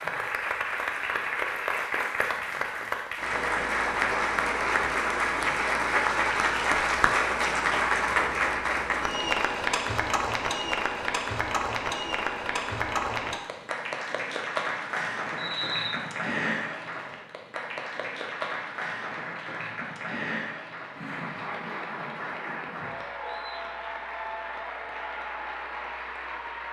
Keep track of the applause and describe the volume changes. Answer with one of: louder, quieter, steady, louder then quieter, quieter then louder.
quieter.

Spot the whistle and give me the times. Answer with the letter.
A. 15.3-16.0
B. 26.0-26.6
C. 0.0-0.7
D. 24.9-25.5
A.